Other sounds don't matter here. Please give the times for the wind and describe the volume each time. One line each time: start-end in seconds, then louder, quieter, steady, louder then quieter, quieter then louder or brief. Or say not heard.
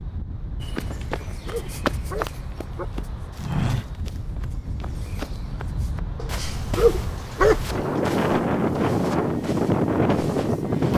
0.0-10.9 louder.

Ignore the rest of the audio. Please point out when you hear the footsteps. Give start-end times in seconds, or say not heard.
0.6-10.9.